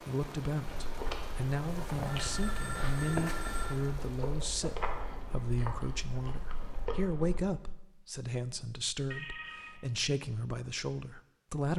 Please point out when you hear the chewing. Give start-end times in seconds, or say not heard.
0.7-7.4.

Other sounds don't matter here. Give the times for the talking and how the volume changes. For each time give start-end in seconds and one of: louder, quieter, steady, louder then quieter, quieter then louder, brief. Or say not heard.
0.0-11.7 steady.